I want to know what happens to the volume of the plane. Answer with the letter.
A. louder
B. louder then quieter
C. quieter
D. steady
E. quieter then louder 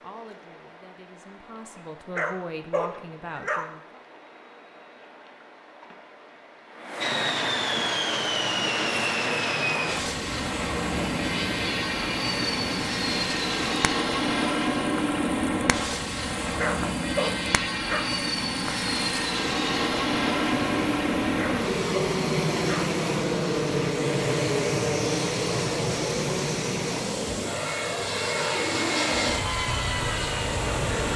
D.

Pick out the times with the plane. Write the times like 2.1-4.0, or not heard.
7.0-31.1.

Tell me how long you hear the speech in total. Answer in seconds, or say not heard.
4 s.